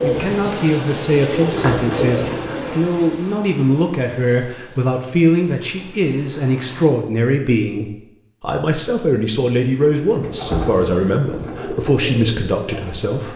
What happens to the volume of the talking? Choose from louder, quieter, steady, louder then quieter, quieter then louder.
steady.